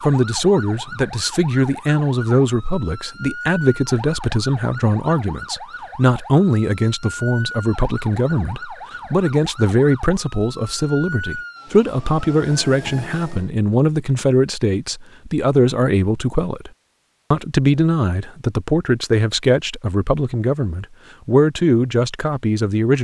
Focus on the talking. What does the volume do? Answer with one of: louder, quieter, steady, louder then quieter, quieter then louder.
steady.